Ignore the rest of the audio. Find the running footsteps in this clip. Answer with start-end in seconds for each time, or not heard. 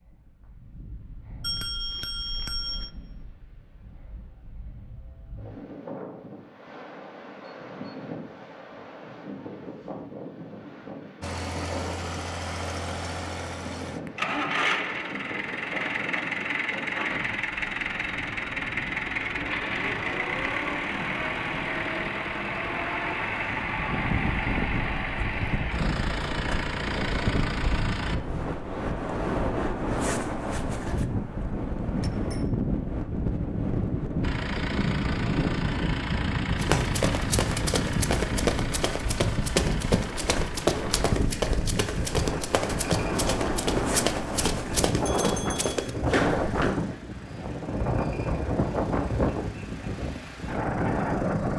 36.6-46.8.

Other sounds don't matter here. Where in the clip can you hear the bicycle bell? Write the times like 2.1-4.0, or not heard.
1.4-2.9, 31.1-32.5, 45.0-45.8.